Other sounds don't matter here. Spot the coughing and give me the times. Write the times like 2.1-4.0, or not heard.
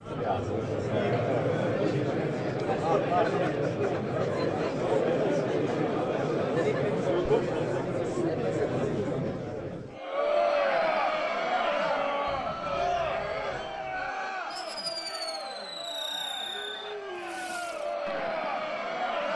not heard.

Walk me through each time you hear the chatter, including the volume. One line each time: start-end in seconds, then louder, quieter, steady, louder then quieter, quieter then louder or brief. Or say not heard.
0.0-19.3 quieter.